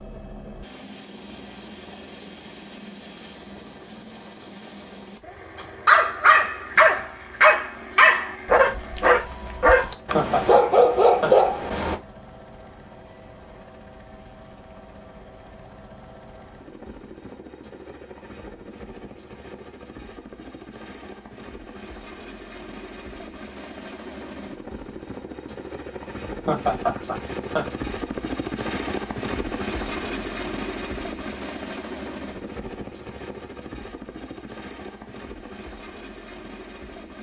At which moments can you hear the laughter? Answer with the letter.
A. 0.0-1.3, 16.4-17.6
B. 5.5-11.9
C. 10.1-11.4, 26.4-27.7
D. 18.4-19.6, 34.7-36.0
C.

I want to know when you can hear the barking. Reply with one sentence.
The barking can be heard from 5.5 to 11.9 s.